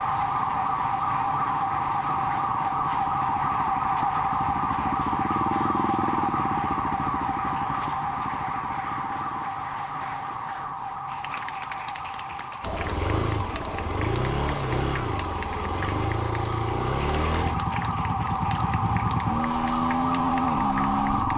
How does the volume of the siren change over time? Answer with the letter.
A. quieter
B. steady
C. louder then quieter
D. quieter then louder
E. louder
D.